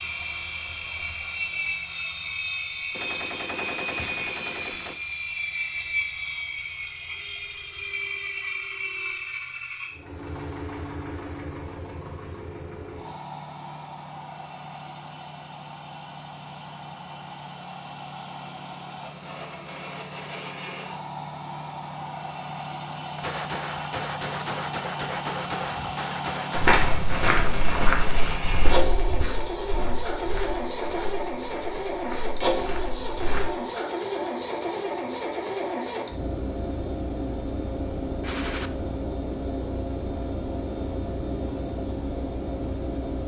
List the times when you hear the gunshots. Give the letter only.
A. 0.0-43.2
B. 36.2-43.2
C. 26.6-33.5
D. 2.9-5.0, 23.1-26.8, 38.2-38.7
D.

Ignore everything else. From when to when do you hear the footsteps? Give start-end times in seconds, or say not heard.
26.6-33.5.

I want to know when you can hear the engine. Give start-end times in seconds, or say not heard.
0.0-43.2.